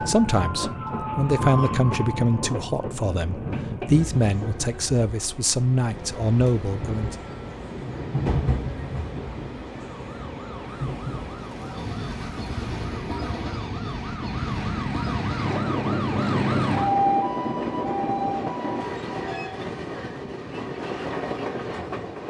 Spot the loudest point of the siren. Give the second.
17 s.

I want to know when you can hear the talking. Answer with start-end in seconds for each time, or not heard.
0.0-7.2.